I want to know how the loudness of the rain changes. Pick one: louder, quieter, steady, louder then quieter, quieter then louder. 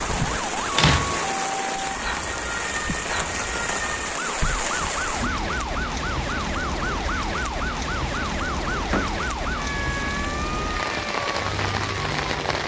steady.